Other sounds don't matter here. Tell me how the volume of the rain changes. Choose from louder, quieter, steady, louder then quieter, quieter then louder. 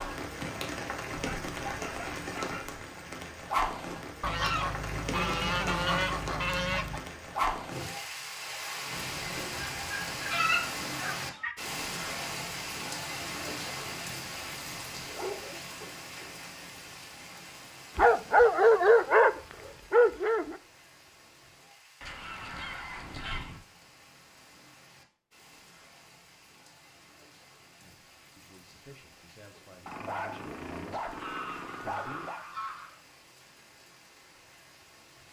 quieter.